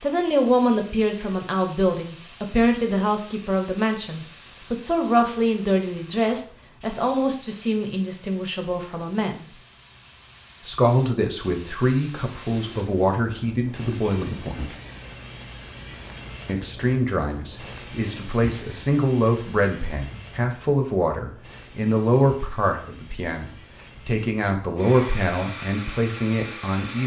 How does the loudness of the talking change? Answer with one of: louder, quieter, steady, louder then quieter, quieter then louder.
steady.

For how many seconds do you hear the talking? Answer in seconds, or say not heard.
24 s.